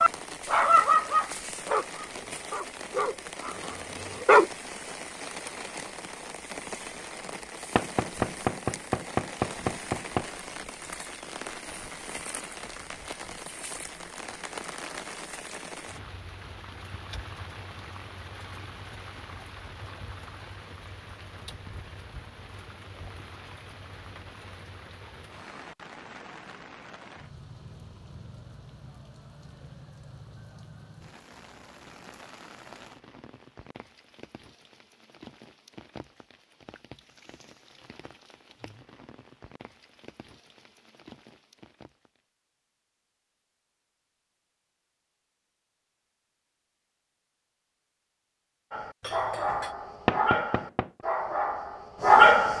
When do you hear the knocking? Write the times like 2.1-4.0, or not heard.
7.8-10.2, 50.0-50.9.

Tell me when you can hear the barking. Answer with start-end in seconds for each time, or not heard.
0.0-4.5, 48.7-52.5.